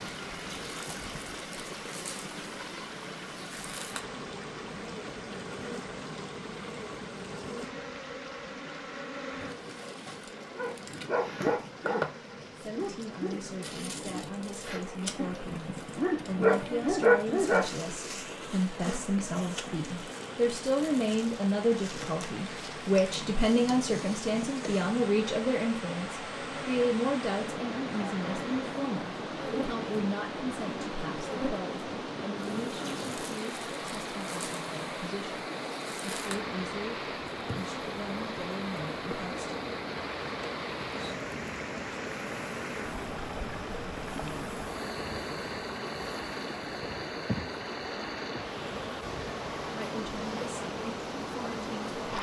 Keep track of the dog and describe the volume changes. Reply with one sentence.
The volume of the dog goes down, then up.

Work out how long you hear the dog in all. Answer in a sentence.
The dog can be heard for 7 seconds in total.